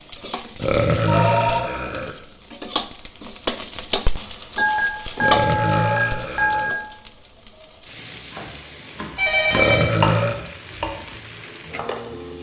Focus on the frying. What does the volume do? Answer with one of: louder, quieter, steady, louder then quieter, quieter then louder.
louder then quieter.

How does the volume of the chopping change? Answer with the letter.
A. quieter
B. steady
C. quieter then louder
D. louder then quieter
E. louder
D.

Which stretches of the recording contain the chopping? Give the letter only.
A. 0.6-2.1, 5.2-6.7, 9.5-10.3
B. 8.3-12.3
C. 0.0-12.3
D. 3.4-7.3
B.